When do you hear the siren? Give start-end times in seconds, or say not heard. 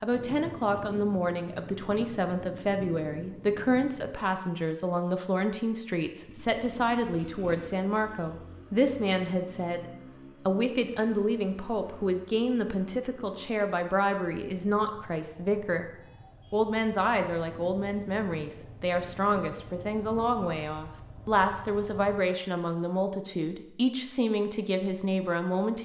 not heard.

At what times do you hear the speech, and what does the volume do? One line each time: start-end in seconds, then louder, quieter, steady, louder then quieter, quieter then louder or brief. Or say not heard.
0.0-15.9 steady
16.5-25.8 steady.